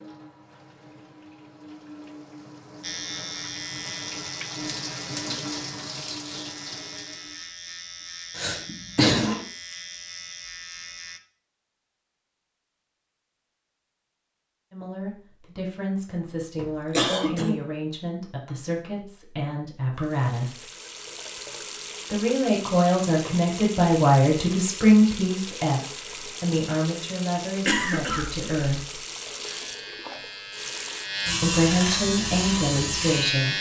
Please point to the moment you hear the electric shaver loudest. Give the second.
32 s.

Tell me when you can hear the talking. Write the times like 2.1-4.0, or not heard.
14.7-20.6, 22.1-29.0, 31.4-33.5.